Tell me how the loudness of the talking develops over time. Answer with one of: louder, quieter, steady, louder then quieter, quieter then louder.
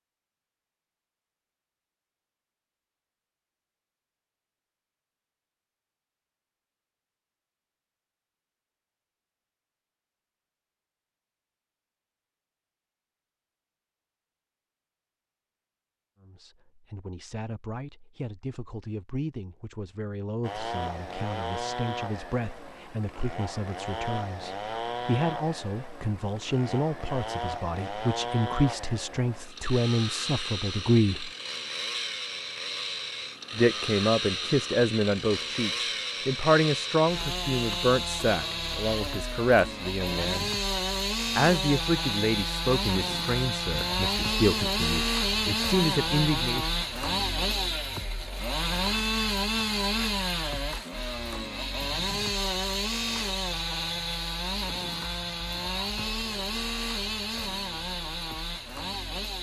louder.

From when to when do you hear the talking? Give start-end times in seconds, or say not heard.
16.2-31.3, 33.5-40.5, 41.4-46.6.